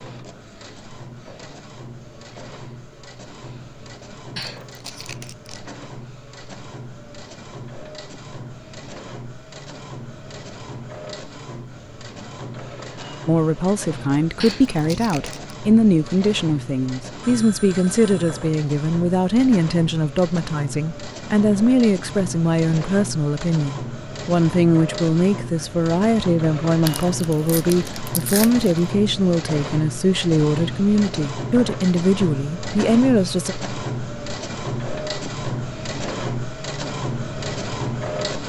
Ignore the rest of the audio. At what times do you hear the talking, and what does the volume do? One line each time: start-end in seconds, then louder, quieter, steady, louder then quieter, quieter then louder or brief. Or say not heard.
13.2-33.5 steady.